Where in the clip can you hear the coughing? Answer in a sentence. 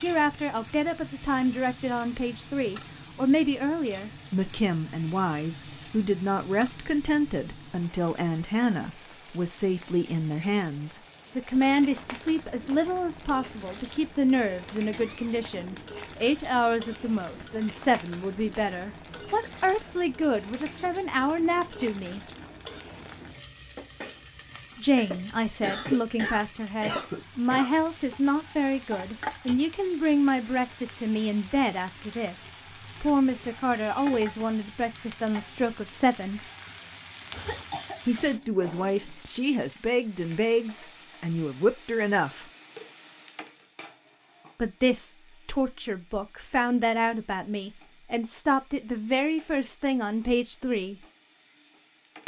The coughing can be heard from 14.9 to 15.6 s, from 25.6 to 27.7 s and from 37.4 to 38.9 s.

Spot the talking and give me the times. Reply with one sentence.
You can hear the talking from 0.0 to 22.2 s, from 24.8 to 36.4 s, from 38.0 to 42.5 s and from 44.5 to 51.0 s.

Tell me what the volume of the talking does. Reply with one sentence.
The loudness of the talking stays about the same.